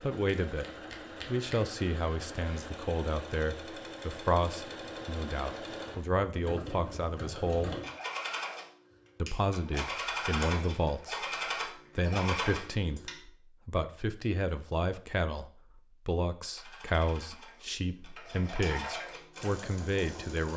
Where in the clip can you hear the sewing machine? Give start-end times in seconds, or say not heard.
0.0-13.2, 16.5-20.5.